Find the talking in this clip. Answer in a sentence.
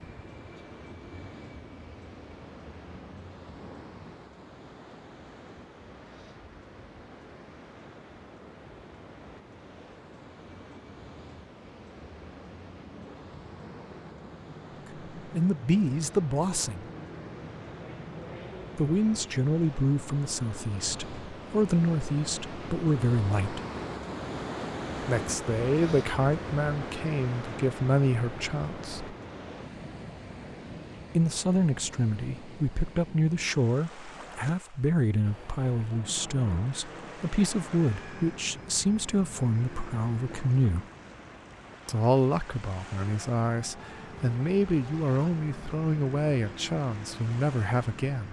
The talking can be heard from 15.2 to 16.9 s, from 18.8 to 23.6 s, from 25.1 to 29.1 s, from 31.1 to 40.9 s and from 41.9 to 48.2 s.